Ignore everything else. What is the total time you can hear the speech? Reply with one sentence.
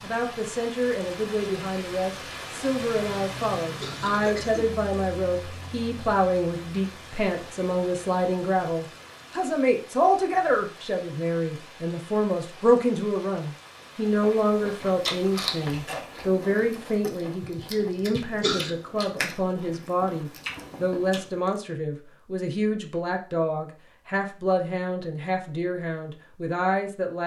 You can hear the speech for 27 seconds altogether.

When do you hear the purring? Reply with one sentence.
You can't hear the purring here.